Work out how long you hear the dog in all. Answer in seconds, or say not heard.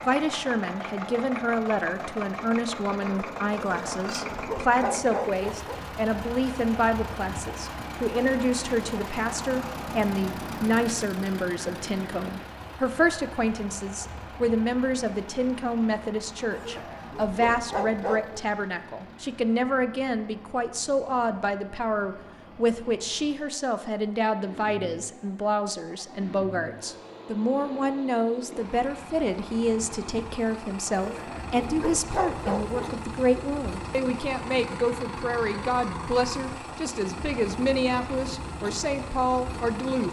6 s.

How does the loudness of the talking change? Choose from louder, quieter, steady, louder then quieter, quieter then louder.
steady.